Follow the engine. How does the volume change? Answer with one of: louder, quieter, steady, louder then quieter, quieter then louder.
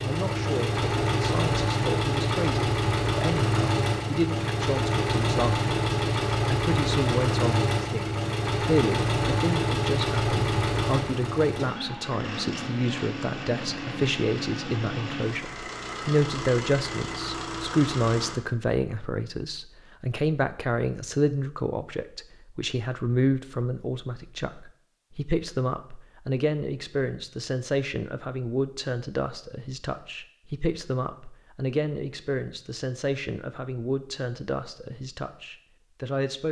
quieter.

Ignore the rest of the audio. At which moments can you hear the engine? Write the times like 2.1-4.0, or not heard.
0.0-18.4.